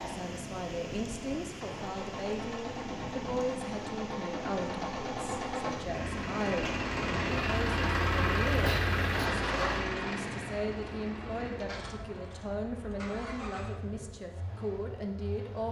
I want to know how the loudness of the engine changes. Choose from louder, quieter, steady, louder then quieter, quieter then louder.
louder then quieter.